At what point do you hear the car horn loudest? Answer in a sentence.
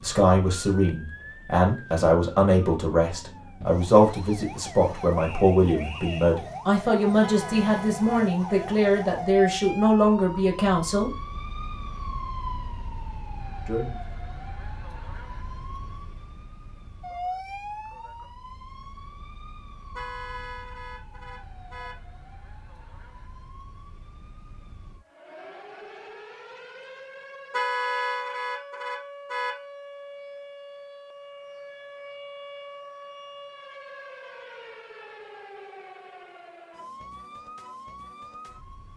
The volume of the car horn peaks at 28 seconds.